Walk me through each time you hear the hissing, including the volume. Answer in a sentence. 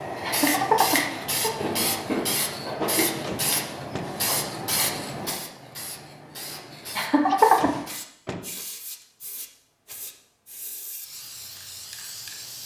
The hissing can be heard from 0.0 to 12.6 s, getting quieter.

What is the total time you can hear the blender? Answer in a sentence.
The blender can't be heard in this clip.